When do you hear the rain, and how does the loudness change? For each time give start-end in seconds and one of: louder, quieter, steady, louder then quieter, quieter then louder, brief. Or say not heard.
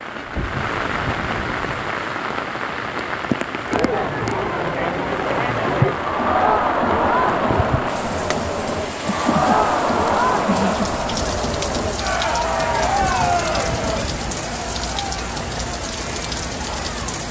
0.0-17.2 steady.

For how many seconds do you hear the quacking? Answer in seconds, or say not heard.
3 s.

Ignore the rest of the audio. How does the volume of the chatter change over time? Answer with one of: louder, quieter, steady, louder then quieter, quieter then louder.
quieter.